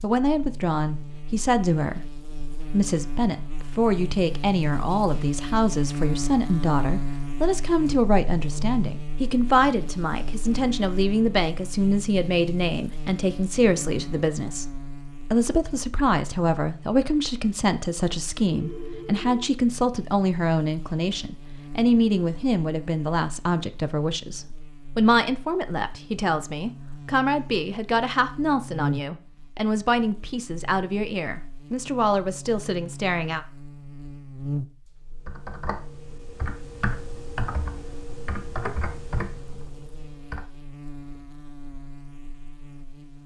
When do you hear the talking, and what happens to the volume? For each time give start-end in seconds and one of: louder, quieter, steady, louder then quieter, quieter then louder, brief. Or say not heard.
0.0-33.5 steady.